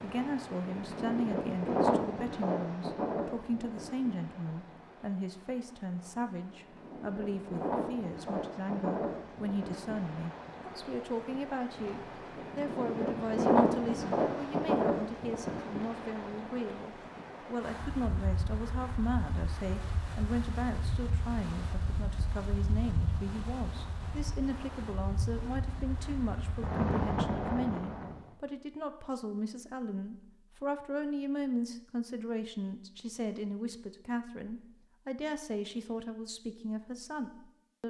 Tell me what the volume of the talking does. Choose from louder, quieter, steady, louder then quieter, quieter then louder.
steady.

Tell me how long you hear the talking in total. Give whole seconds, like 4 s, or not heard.
38 s.